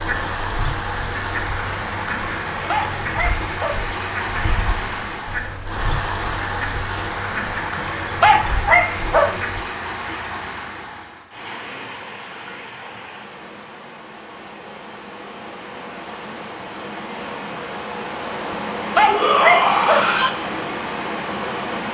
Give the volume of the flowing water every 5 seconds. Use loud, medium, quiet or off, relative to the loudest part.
loud, loud, medium, loud, loud.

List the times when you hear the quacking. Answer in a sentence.
The quacking can be heard from 0.0 to 9.6 s.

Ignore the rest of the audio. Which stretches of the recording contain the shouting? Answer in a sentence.
The shouting can be heard from 19.1 to 20.4 s.